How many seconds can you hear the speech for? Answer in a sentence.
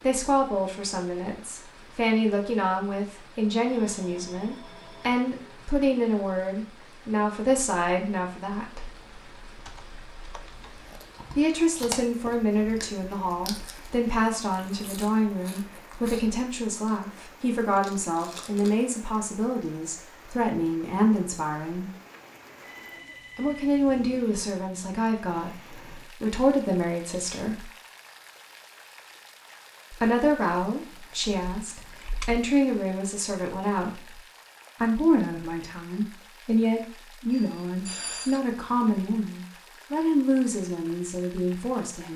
The speech can be heard for 35 seconds in total.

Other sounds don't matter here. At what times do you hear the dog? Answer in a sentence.
You can't hear the dog here.